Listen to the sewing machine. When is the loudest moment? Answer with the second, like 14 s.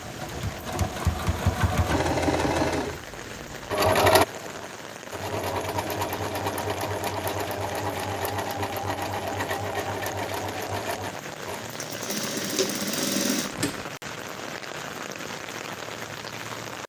4 s.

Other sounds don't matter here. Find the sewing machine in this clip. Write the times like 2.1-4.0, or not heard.
0.0-13.8.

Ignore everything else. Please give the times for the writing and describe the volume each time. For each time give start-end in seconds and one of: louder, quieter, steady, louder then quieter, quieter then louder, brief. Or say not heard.
not heard.